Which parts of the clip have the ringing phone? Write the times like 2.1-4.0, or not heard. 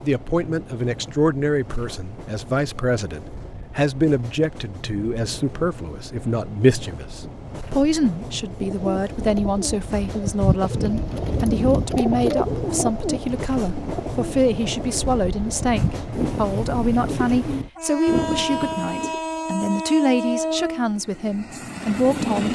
not heard.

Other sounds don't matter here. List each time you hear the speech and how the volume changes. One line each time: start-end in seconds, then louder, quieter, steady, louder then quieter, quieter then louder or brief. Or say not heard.
0.0-22.5 steady.